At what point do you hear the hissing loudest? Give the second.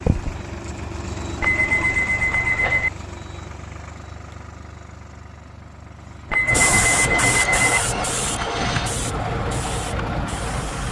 7 s.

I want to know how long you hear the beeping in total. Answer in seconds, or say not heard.
3 s.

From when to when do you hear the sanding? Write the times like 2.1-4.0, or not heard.
not heard.